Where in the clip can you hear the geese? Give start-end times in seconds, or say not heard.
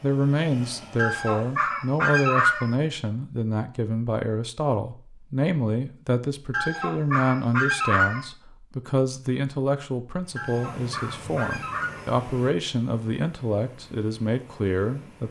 0.9-2.6, 6.5-8.2, 10.3-12.1.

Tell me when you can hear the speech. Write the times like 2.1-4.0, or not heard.
0.0-15.2.